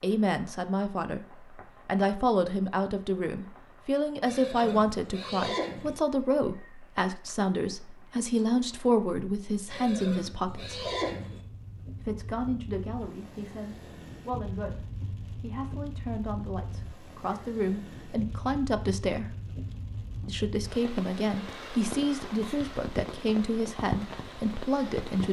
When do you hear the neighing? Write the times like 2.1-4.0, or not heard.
4.2-6.0, 9.7-11.4, 21.4-22.6.